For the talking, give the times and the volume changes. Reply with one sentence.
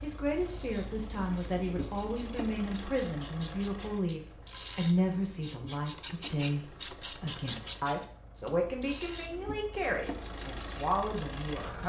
The talking can be heard from 0.0 to 11.8 s, at a steady volume.